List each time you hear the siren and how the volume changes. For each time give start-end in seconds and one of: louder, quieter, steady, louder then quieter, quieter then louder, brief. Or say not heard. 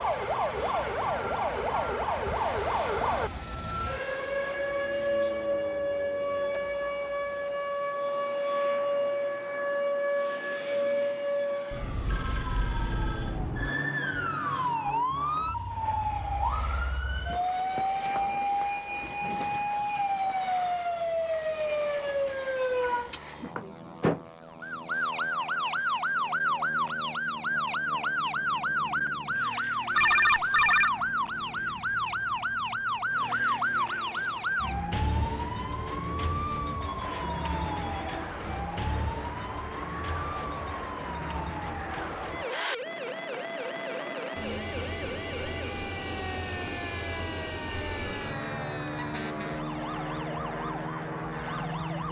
0.0-52.0 quieter.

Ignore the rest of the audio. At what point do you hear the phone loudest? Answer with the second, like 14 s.
30 s.